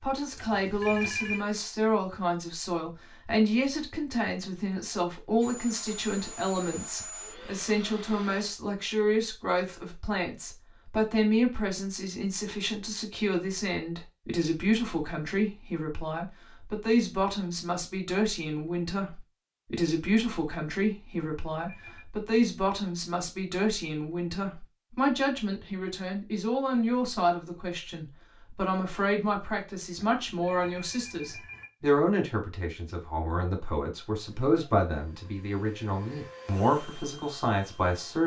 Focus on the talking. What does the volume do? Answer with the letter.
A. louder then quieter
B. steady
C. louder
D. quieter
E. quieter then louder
B.